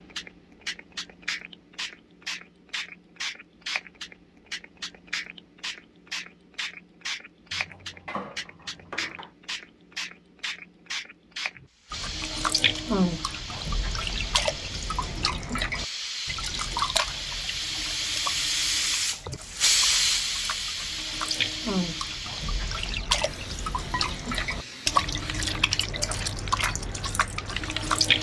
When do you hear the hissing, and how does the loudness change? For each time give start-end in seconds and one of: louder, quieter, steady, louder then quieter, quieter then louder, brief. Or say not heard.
0.0-28.1 louder then quieter.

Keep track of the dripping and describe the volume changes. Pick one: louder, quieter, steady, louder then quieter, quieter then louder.
quieter then louder.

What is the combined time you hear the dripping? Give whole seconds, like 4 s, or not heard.
16 s.